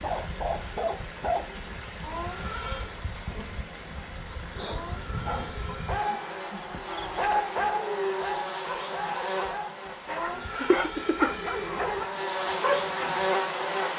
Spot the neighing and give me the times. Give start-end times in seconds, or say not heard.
2.0-3.0, 4.7-6.5, 10.1-11.9.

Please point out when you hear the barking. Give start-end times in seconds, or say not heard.
0.0-1.8, 4.5-13.2.